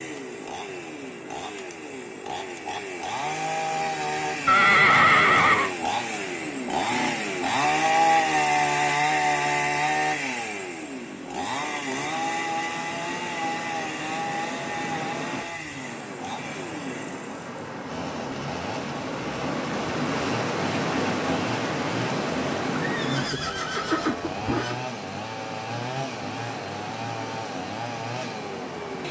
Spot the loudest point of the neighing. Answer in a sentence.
The loudest moment of the neighing is at 5 seconds.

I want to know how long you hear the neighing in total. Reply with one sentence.
The neighing can be heard for 3 seconds in total.